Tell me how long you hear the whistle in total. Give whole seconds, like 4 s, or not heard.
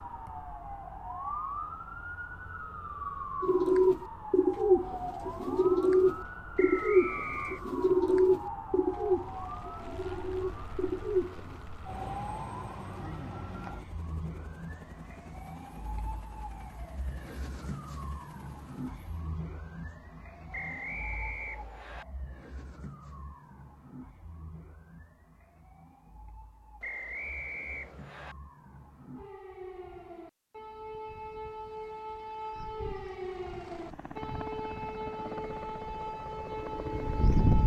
4 s.